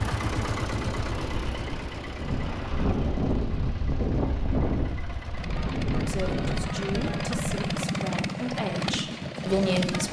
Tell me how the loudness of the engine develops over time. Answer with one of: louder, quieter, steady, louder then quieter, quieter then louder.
quieter then louder.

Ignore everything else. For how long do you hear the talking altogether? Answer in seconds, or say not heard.
4 s.